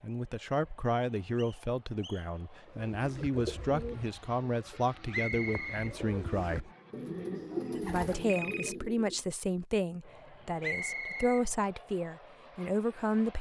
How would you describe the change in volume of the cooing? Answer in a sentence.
The volume of the cooing goes down, then up.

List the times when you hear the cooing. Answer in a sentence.
The cooing can be heard from 2.7 to 9.2 s.